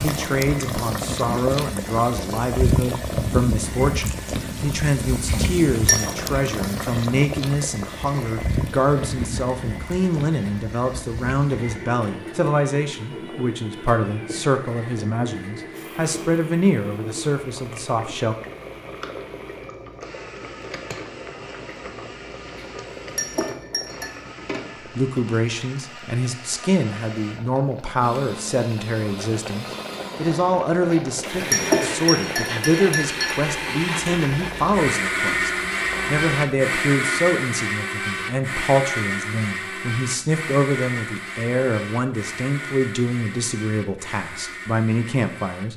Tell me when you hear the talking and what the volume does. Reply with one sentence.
The talking can be heard from 0.0 to 18.4 s, at a steady volume; and from 24.9 to 45.7 s, at a steady volume.